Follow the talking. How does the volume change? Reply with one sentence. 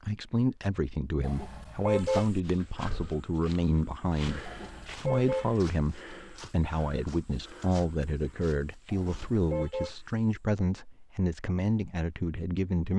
The loudness of the talking stays about the same.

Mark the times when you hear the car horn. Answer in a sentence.
You can hear the car horn from 1.2 to 2.2 s, from 4.4 to 5.5 s and from 8.8 to 9.9 s.